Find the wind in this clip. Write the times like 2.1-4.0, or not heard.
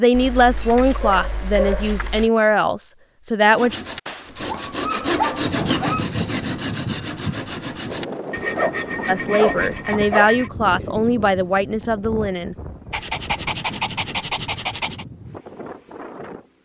5.3-16.5.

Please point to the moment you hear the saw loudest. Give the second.
6 s.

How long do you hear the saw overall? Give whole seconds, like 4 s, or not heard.
7 s.